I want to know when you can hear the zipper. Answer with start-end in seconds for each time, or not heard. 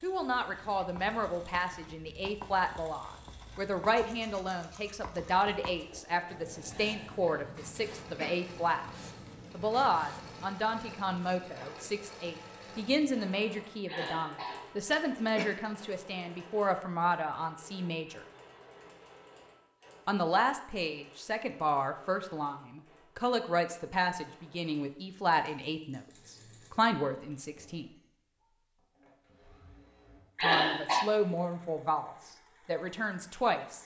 not heard.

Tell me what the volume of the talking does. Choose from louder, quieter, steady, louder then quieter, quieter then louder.
steady.